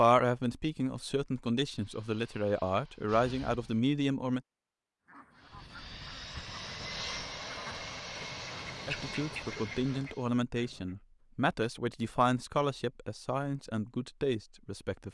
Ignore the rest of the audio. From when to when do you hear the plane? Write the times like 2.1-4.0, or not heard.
1.6-3.8, 5.4-10.3.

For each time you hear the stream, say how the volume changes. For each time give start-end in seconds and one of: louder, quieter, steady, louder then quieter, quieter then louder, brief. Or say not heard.
not heard.